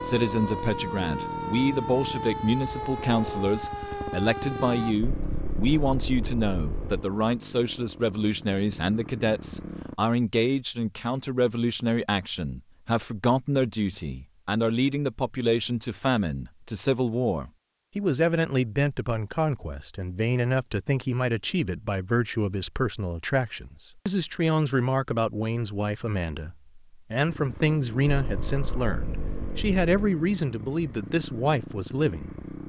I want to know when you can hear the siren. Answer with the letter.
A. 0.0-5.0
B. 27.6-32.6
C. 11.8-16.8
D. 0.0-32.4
A.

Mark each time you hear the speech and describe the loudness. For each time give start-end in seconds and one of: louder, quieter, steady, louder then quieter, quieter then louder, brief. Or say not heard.
0.0-32.4 steady.